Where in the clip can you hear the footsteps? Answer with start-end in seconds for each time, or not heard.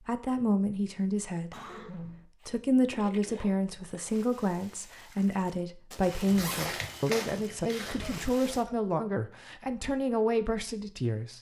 6.0-8.2.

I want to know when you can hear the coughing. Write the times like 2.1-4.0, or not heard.
1.5-2.2, 7.8-8.8.